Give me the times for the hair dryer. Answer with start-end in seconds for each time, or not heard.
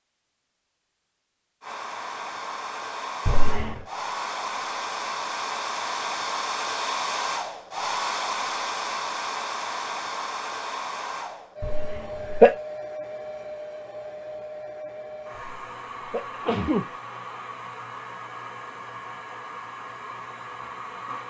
1.6-21.2.